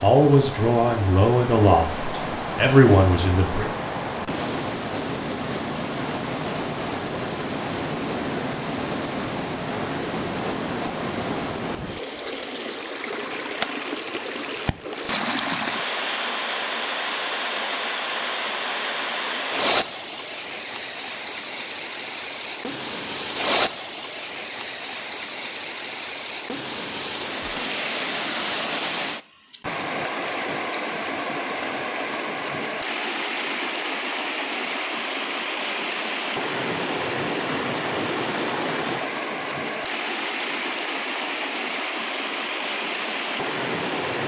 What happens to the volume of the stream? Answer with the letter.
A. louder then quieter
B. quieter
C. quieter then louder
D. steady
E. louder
D.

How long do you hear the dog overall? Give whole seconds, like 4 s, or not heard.
not heard.